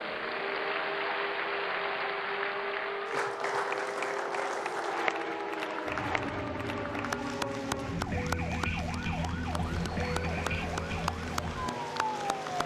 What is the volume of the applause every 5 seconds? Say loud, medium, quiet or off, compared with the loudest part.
loud, loud, medium.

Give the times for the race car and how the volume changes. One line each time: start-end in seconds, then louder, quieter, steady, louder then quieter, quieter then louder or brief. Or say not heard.
0.0-12.6 steady.